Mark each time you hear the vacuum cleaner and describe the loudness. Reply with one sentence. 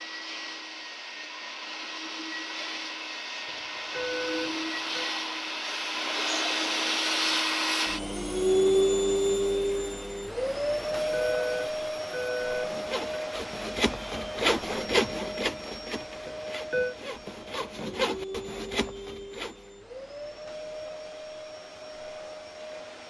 The vacuum cleaner can be heard from 0.0 to 23.0 s, getting louder then quieter.